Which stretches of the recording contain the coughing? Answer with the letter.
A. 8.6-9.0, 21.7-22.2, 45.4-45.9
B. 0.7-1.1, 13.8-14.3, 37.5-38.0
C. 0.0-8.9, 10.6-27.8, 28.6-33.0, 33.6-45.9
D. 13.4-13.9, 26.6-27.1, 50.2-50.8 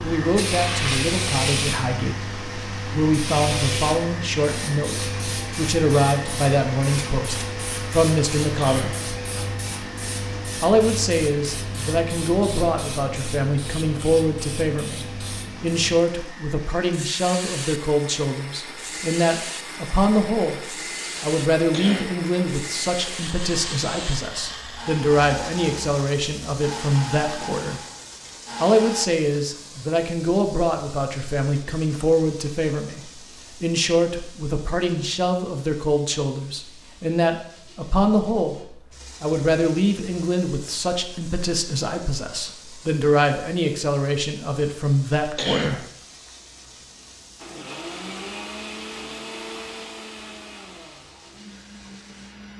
A.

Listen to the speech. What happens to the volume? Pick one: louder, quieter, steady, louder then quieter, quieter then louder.
steady.